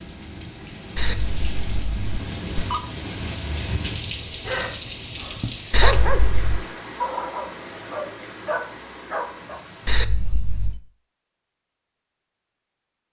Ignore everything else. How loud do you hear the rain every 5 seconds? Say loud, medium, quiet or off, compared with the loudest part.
loud, loud, off.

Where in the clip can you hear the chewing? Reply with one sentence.
The chewing can't be heard in this clip.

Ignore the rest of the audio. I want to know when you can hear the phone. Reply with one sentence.
You can hear the phone from 0.9 to 2.8 s, from 5.7 to 6.7 s and from 9.8 to 10.8 s.